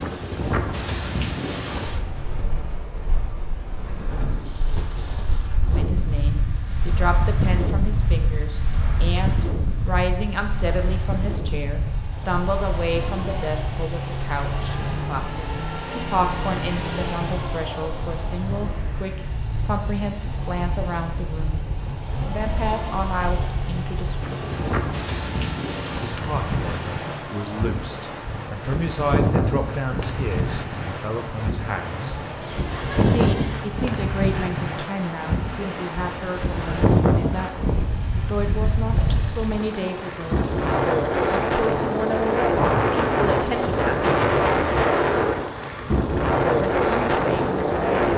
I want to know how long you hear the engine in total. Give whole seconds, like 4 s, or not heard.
38 s.